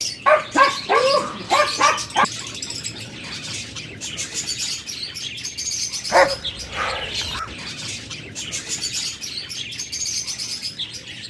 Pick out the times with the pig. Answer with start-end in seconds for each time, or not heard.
not heard.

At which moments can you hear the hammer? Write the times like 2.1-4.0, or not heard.
not heard.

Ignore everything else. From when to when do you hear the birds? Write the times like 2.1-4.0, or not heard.
0.0-11.2.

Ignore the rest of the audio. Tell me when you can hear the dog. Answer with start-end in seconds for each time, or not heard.
0.2-2.2, 6.1-7.5.